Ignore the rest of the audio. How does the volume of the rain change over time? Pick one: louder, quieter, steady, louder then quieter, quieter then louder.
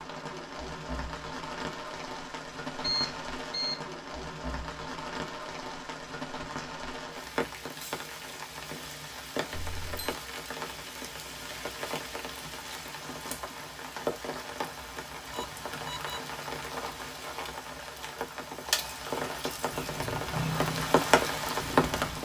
louder.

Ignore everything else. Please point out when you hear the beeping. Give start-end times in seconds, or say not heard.
2.8-3.8, 9.5-10.2, 15.3-16.2.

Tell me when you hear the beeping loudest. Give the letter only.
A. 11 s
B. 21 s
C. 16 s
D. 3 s
D.